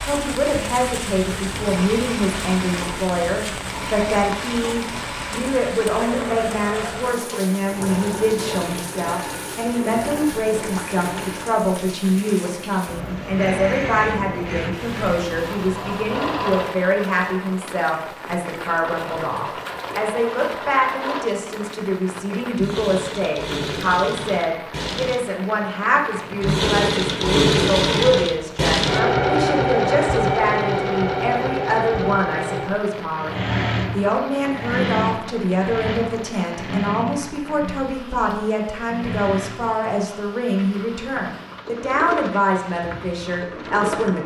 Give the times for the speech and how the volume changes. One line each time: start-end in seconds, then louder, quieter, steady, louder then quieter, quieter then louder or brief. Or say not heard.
0.0-44.2 steady.